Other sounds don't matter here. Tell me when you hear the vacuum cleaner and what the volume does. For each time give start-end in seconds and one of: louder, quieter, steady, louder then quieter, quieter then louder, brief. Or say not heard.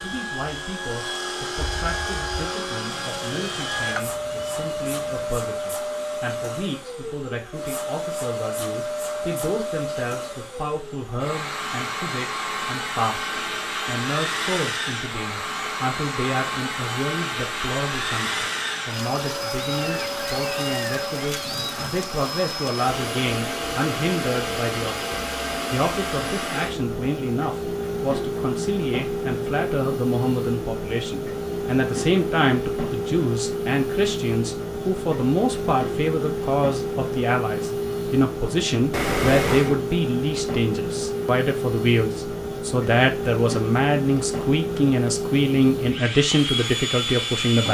0.0-47.7 steady.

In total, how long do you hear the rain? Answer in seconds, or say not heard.
not heard.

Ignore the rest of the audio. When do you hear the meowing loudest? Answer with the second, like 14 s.
39 s.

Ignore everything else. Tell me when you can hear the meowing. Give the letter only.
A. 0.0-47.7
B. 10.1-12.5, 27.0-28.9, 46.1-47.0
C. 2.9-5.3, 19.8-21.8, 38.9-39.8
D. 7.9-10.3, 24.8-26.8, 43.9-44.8
C.